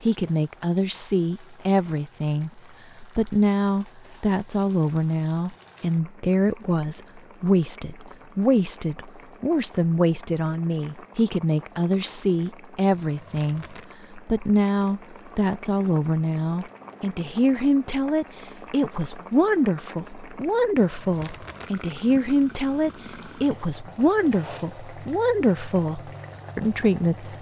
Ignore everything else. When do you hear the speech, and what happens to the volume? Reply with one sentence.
The speech can be heard from 0.0 to 27.3 s, at a steady volume.